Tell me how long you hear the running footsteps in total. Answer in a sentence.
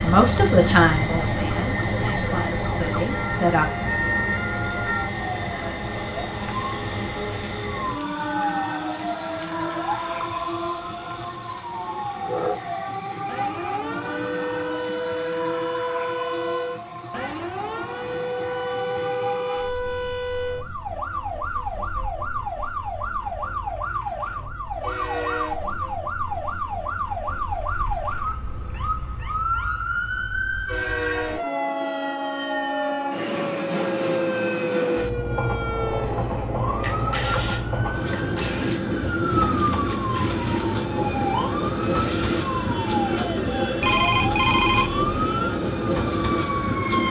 You can't hear the running footsteps here.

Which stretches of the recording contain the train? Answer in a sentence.
The train can be heard from 0.0 to 47.0 s.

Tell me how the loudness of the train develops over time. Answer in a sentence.
The volume of the train goes down, then up.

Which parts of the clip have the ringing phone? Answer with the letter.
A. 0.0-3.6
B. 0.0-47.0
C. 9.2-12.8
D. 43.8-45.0
D.